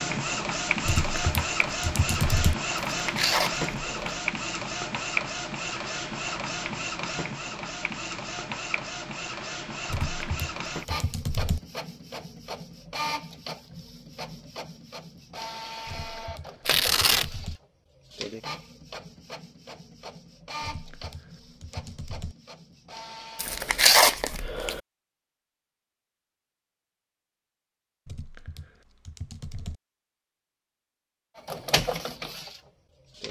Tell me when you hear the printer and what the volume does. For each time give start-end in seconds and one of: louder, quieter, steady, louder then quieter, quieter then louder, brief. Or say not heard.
0.0-23.7 quieter
31.4-33.2 brief.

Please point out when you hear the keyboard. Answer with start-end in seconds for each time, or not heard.
0.8-2.5, 9.8-11.6, 15.8-17.6, 20.6-22.4, 28.1-29.8.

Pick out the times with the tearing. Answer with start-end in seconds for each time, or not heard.
3.0-4.2, 16.6-17.2, 23.4-24.8.